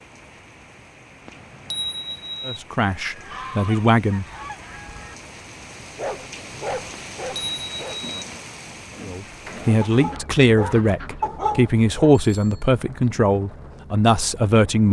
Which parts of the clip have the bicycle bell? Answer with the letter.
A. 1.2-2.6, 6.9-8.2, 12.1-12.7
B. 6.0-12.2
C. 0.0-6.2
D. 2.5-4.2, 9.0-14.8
A.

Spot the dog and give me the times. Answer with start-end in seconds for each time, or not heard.
6.0-12.2.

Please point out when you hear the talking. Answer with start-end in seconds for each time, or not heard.
2.5-4.2, 9.0-14.8.